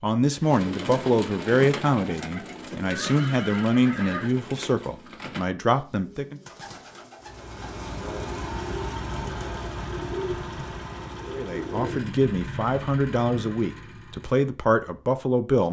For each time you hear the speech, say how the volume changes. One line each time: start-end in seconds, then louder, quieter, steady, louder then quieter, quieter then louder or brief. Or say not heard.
0.0-6.4 steady
11.3-15.6 steady.